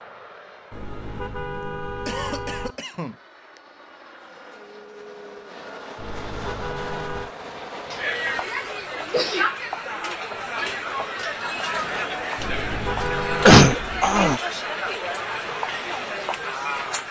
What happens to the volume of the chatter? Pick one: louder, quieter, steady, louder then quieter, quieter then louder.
steady.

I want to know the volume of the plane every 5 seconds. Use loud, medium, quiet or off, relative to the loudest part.
medium, loud, off, off.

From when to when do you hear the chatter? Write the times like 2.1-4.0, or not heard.
7.8-17.0.